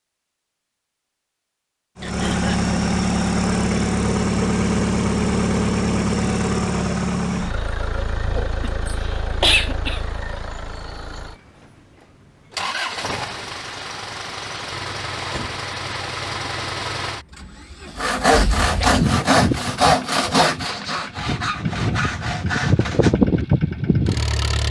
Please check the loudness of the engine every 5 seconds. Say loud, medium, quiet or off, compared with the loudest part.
loud, loud, medium, medium, loud.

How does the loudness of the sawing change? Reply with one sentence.
The loudness of the sawing goes down.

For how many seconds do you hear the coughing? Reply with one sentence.
The coughing can be heard for 3 seconds in total.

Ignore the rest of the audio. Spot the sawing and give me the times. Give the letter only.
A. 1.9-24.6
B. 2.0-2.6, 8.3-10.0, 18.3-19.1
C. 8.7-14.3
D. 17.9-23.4
D.